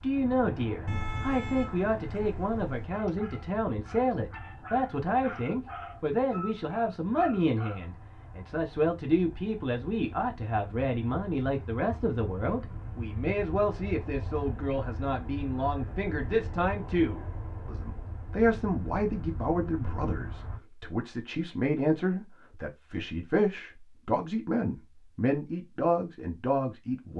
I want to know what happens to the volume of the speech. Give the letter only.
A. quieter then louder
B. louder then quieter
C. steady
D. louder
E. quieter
C.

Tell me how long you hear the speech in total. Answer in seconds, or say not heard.
27 s.